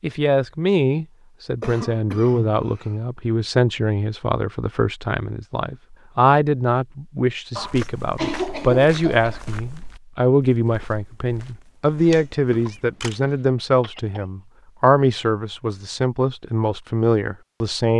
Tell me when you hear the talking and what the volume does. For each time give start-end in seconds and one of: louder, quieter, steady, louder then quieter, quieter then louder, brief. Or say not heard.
0.0-17.9 steady.